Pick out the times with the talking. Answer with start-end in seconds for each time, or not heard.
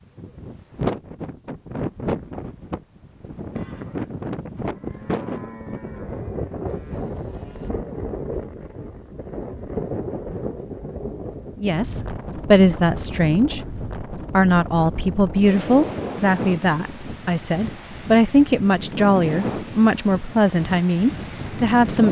11.6-22.0.